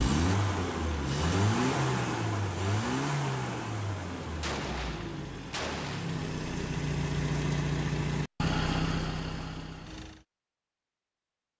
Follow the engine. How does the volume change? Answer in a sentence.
The volume of the engine goes down, then up.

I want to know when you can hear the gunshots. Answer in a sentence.
You can hear the gunshots from 4.4 to 6.2 s.